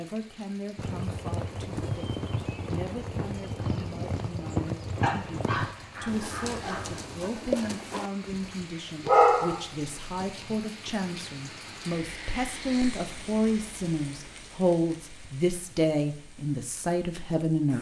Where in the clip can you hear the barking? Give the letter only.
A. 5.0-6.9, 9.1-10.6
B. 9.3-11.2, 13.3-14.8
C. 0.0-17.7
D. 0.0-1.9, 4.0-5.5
A.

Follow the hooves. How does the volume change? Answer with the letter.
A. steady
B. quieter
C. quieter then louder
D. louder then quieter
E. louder
A.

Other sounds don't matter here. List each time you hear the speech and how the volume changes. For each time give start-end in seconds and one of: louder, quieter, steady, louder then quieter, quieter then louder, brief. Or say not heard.
0.0-17.7 louder.